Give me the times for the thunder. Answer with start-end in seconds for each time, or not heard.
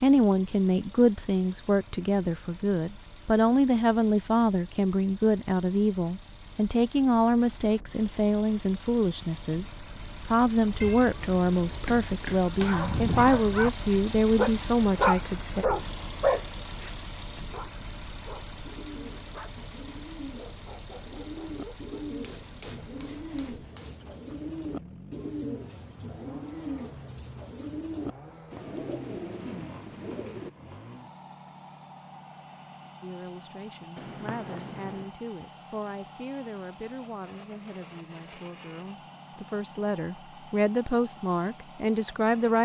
not heard.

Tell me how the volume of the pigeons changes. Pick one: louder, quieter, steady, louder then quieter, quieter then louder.
louder.